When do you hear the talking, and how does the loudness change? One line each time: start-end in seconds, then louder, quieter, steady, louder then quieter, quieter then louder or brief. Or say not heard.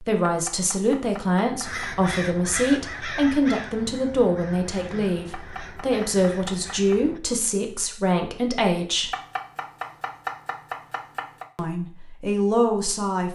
0.0-9.1 steady
11.6-13.3 brief.